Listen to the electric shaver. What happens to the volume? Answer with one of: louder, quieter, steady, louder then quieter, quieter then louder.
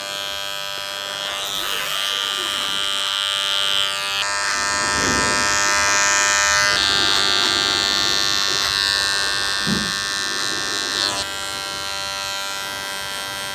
louder then quieter.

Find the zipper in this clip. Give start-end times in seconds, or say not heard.
1.4-3.0.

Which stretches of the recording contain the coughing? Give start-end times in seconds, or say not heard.
not heard.